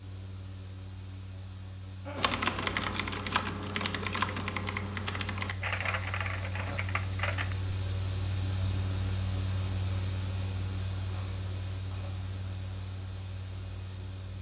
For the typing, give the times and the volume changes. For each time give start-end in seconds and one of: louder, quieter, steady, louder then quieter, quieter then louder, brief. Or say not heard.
2.1-7.8 quieter.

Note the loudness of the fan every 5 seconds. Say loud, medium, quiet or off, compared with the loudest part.
medium, loud, loud.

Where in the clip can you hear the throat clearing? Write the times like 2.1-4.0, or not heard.
2.0-2.6, 5.6-6.8, 10.9-12.2.